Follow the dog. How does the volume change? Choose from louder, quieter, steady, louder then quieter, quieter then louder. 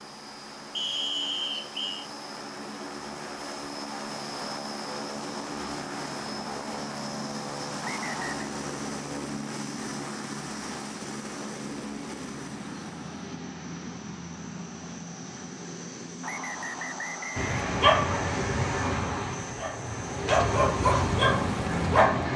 quieter then louder.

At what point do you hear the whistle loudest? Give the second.
1 s.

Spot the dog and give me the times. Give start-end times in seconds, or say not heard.
17.4-22.3.